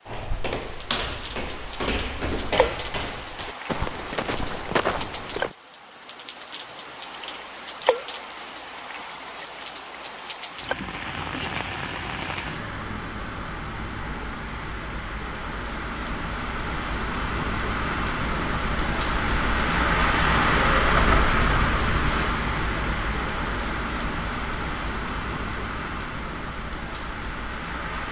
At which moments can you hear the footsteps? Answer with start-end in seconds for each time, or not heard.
0.1-5.5.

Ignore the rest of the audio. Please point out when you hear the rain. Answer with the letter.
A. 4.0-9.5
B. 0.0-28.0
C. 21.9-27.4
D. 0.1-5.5
B.